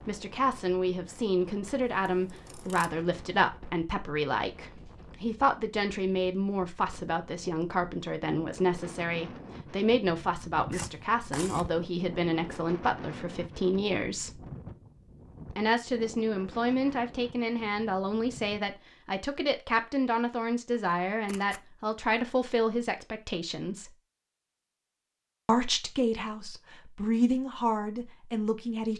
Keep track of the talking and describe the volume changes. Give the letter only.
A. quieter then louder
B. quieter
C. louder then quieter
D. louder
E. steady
E.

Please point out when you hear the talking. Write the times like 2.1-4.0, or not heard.
0.1-14.4, 15.6-23.9, 25.4-28.9.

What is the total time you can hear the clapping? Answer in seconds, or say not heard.
not heard.